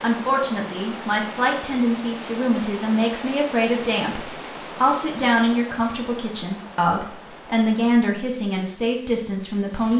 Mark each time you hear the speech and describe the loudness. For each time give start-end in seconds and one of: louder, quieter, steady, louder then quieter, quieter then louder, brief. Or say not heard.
0.0-9.9 steady.